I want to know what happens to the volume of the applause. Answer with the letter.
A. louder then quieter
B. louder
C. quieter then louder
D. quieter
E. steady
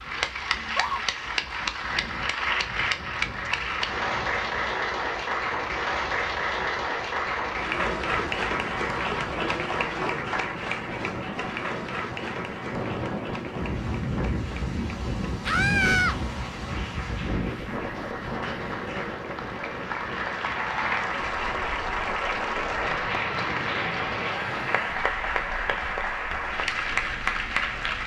C.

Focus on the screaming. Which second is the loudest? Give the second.
16 s.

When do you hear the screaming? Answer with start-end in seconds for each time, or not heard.
0.5-1.0, 15.4-16.1, 24.2-25.1.